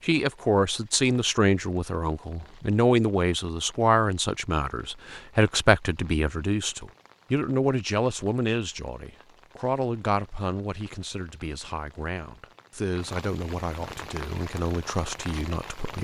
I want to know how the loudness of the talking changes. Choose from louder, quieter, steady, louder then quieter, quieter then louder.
quieter.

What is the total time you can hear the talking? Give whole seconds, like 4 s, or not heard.
16 s.